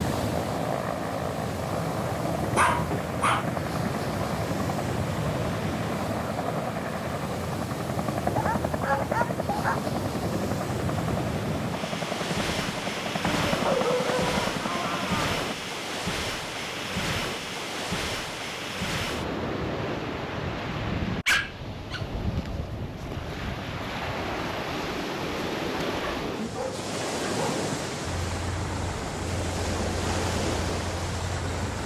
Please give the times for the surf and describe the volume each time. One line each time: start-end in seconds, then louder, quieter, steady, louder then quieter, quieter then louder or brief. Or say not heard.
0.0-31.8 steady.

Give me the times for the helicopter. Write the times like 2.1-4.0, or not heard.
0.0-15.6, 28.1-31.8.